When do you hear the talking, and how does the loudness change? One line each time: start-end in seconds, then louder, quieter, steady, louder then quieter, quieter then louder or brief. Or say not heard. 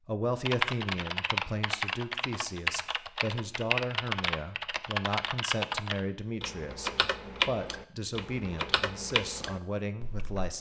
0.1-10.5 steady.